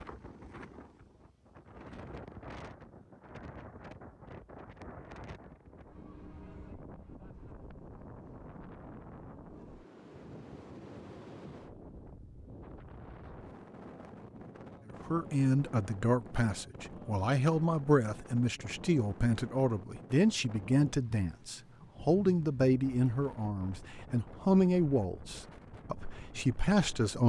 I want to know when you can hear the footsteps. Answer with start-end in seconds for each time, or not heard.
not heard.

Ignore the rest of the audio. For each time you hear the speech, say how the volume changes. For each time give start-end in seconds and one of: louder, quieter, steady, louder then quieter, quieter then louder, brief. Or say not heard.
15.1-27.2 steady.